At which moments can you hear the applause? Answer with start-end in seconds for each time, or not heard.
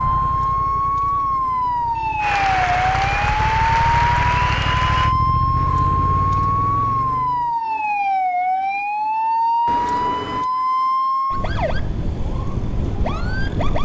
2.1-5.2.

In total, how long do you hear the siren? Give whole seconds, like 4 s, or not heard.
14 s.